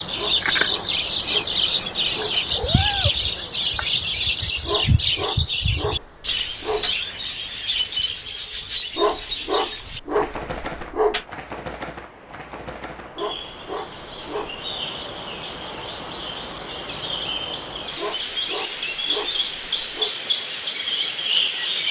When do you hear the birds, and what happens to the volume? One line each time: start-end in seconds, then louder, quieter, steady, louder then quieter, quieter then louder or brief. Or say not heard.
0.0-21.8 quieter then louder.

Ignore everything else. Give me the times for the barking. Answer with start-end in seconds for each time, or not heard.
0.1-2.5, 4.7-7.0, 8.9-11.2, 13.2-14.7, 17.9-20.1.